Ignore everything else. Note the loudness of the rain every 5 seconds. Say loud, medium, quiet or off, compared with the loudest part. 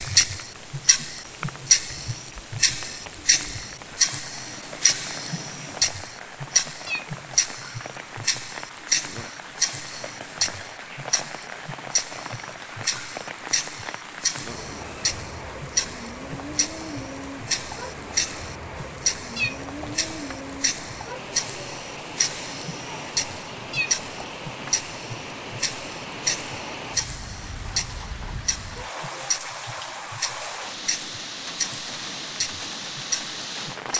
medium, medium, loud, loud, loud, loud, loud.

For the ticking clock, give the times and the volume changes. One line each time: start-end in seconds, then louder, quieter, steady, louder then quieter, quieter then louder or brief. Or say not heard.
0.0-33.9 quieter.